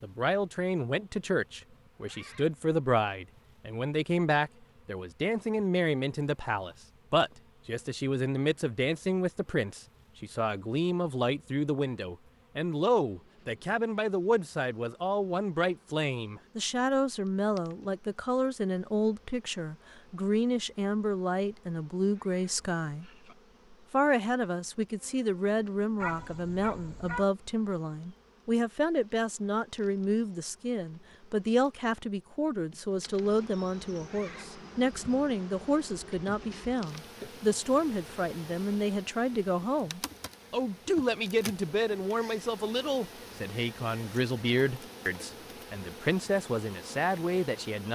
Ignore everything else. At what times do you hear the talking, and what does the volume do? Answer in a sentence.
The talking can be heard from 0.0 to 23.1 s, at a steady volume; and from 23.7 to 47.8 s, at a steady volume.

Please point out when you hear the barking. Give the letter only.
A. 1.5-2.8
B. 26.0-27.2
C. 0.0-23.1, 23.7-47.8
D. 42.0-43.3
B.